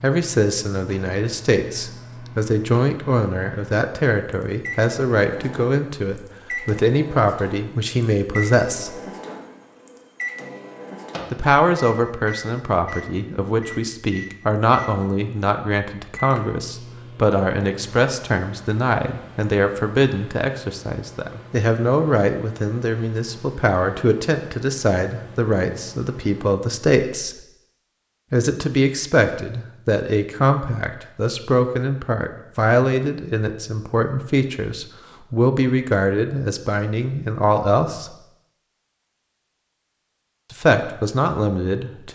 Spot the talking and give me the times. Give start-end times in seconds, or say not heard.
0.0-9.0, 11.3-27.4, 28.3-38.1, 40.5-42.1.